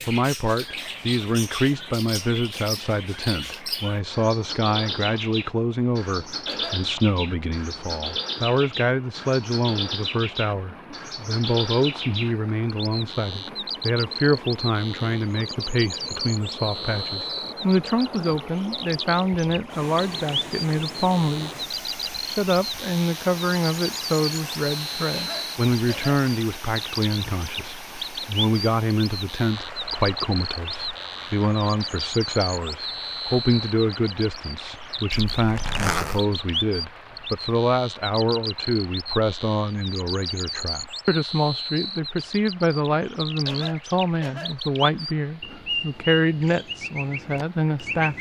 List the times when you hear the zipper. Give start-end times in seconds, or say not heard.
35.1-36.2.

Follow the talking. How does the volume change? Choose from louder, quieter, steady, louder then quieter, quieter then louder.
steady.